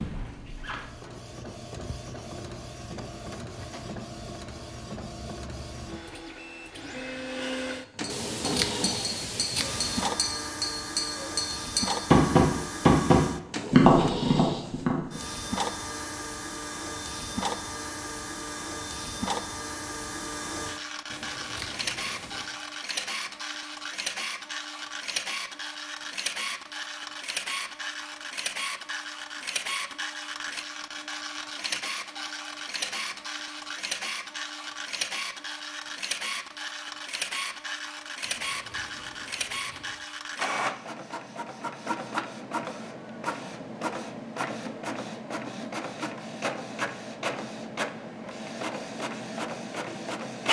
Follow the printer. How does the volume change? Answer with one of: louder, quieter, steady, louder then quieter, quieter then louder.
steady.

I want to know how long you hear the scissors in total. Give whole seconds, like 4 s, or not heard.
5 s.